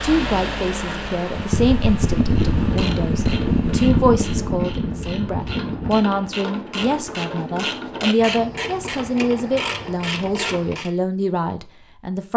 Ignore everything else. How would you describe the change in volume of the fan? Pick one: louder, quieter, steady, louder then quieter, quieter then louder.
louder then quieter.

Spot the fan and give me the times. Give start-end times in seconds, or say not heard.
0.0-6.2.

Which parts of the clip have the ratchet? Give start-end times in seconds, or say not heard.
2.4-10.9.